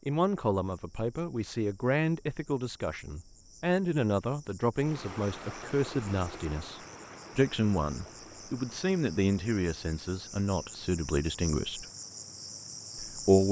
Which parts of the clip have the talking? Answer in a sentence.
The talking can be heard from 0.1 to 11.8 s and from 12.9 to 13.4 s.